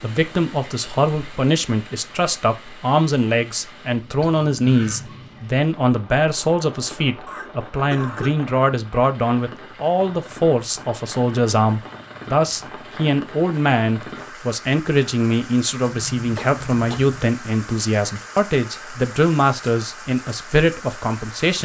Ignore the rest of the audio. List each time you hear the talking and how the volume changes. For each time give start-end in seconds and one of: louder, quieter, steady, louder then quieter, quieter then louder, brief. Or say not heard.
0.0-21.5 steady.